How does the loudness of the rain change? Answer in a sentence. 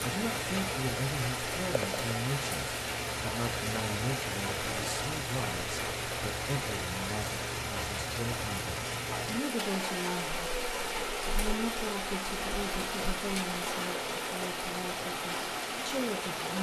The loudness of the rain stays about the same.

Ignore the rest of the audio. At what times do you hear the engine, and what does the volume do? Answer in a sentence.
The engine can be heard from 0.0 to 16.5 s, at a steady volume.